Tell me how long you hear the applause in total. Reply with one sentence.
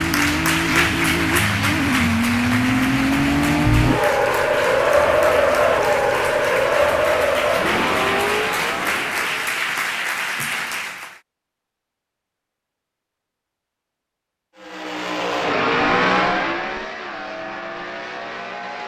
The applause can be heard for 11 seconds in total.